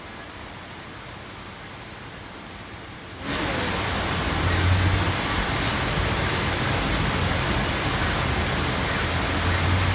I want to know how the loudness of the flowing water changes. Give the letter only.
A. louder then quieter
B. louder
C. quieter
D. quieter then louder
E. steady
B.